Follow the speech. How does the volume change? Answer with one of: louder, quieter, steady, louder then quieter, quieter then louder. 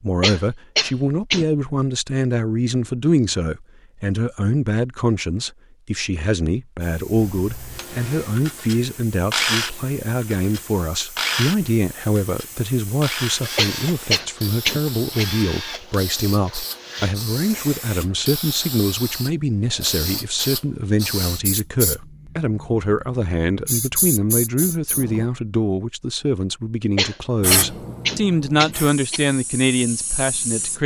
steady.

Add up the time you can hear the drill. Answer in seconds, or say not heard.
10 s.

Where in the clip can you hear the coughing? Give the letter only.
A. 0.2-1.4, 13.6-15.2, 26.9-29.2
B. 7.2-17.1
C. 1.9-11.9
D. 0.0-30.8
A.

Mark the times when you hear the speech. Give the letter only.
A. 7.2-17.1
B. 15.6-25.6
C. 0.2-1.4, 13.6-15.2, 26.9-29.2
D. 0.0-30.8
D.